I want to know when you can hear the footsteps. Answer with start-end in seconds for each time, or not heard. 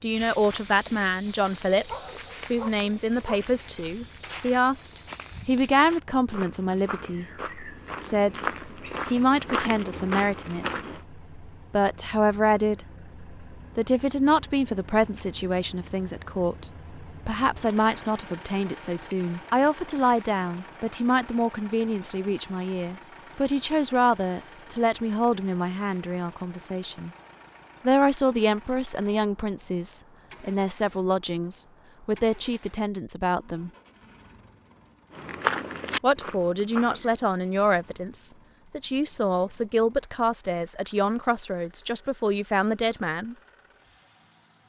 0.1-11.0, 35.1-37.1.